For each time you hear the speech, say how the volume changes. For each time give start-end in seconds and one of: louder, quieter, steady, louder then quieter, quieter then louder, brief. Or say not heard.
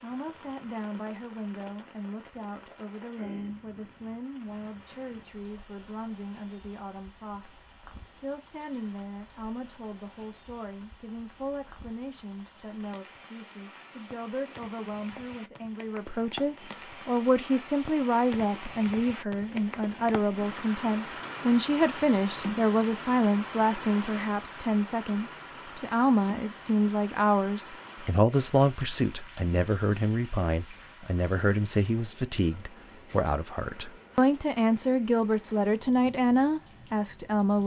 0.0-37.6 louder.